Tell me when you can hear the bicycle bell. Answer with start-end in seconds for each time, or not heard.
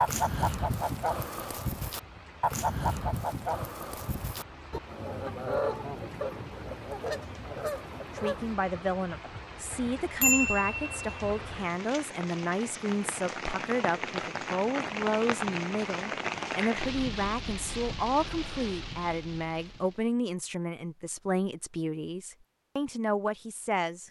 9.7-11.1.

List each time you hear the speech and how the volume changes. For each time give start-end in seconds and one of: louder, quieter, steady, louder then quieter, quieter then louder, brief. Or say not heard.
8.2-24.0 steady.